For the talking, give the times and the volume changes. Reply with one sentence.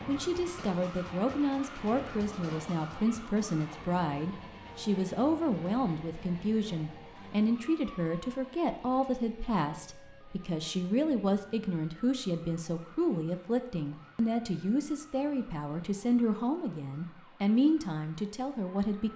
You can hear the talking from 0.1 to 19.1 s, at a steady volume.